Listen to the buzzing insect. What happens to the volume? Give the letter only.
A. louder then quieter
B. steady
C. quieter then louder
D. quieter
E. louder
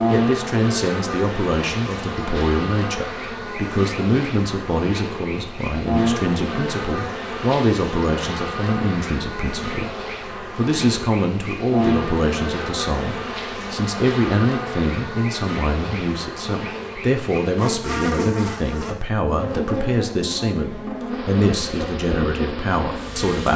B.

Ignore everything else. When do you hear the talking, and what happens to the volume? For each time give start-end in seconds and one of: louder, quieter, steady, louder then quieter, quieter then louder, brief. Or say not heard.
0.1-23.5 steady.